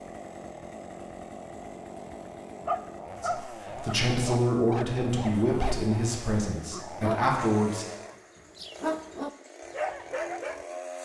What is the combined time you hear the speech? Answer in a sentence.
The speech can be heard for 5 seconds in total.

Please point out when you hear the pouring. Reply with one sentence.
The pouring can't be heard in this clip.